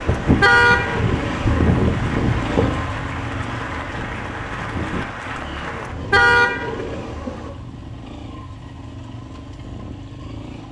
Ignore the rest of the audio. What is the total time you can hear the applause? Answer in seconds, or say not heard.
6 s.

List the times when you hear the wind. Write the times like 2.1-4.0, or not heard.
0.0-7.5.